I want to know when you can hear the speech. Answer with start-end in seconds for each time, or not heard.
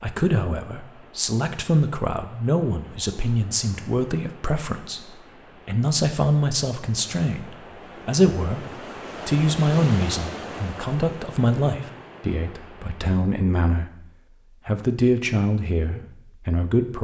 0.0-17.0.